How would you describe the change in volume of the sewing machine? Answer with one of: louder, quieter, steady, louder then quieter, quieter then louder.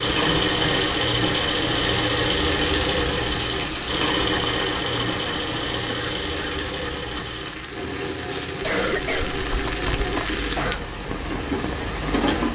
quieter.